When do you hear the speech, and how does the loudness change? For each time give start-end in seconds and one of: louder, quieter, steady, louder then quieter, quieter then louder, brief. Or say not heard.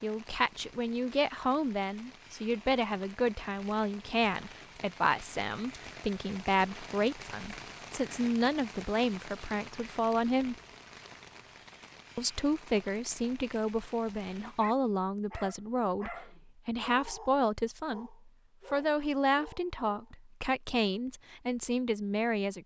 0.0-10.6 steady
12.2-22.6 steady.